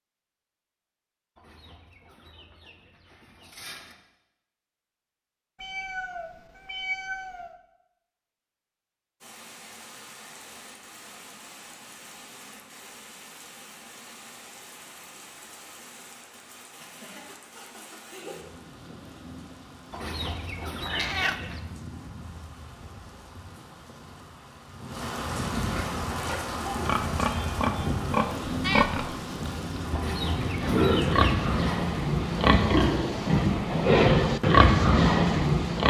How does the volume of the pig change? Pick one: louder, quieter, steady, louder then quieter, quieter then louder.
louder.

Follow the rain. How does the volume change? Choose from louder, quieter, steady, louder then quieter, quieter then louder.
louder.